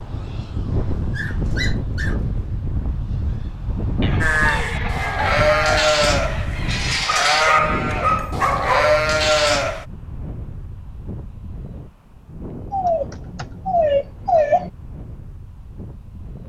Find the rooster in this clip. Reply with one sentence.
You can hear the rooster from 4.0 to 7.0 s.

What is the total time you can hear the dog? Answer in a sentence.
You can hear the dog for 5 seconds altogether.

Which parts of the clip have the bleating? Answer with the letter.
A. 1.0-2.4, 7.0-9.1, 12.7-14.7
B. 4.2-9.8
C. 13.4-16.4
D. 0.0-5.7
B.